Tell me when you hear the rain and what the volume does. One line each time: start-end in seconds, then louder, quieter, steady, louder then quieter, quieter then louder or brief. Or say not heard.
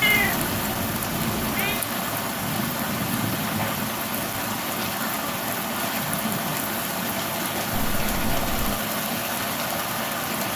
0.0-10.5 steady.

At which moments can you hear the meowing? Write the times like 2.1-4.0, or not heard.
0.0-1.9, 7.7-8.8.